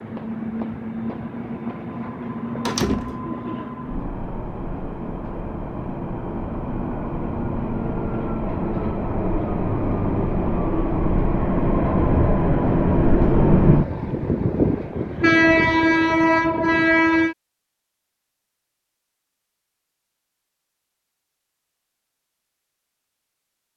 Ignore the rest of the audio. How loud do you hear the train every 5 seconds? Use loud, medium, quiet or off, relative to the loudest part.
quiet, medium, loud, loud, off.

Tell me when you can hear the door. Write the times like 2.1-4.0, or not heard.
2.6-3.3.